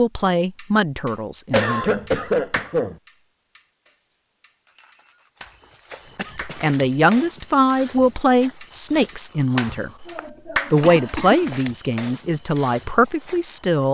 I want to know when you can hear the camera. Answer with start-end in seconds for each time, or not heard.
not heard.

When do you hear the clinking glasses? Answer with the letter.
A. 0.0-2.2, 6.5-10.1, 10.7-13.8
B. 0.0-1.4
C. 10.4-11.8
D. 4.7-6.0
D.